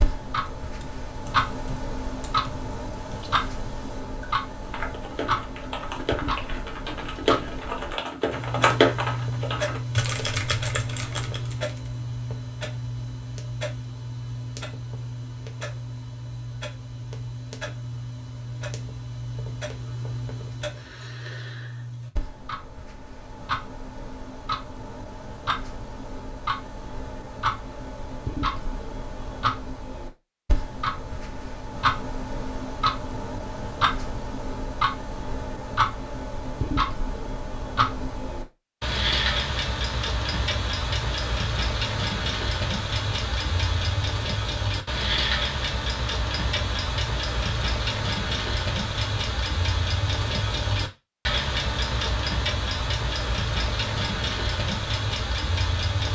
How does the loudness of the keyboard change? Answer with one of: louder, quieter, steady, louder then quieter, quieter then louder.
louder then quieter.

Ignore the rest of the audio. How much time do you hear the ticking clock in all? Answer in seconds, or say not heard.
56 s.